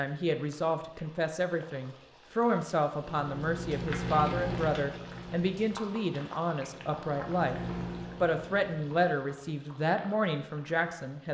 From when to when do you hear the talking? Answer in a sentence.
The talking can be heard from 0.0 to 7.5 s and from 8.2 to 11.2 s.